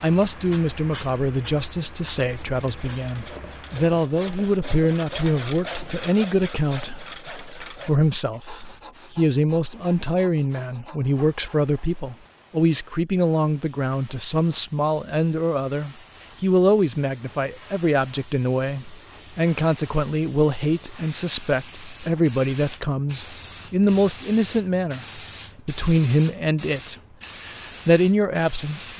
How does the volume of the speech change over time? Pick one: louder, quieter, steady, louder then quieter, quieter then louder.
steady.